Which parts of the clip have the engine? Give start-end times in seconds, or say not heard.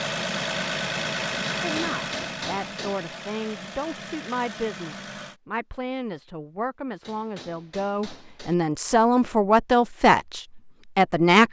0.0-5.4.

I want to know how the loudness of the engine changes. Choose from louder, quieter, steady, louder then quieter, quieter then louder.
quieter.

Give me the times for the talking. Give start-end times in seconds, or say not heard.
1.6-11.4.